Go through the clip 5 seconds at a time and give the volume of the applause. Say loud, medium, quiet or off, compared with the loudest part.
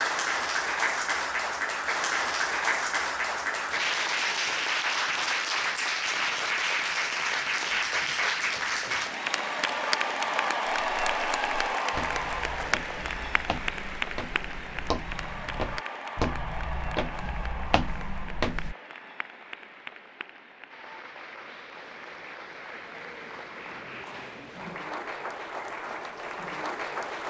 loud, loud, loud, medium, quiet, medium.